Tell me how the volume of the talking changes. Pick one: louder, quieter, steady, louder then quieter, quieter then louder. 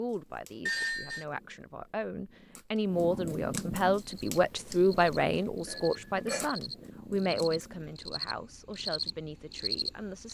louder then quieter.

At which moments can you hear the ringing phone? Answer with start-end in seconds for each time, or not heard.
0.7-1.2, 5.7-6.5.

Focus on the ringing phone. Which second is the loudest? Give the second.
1 s.